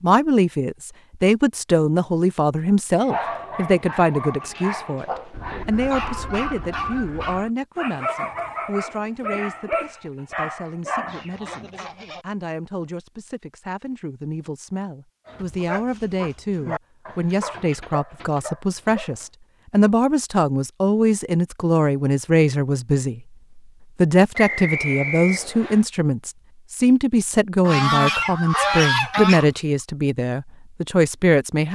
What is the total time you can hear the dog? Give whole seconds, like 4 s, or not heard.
12 s.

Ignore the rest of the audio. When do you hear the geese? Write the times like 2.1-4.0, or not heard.
5.3-7.5, 11.1-12.2, 27.6-29.4.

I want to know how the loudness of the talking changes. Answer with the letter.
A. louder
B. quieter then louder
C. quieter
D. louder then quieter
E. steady
B.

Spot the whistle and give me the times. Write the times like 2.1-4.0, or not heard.
24.4-25.9.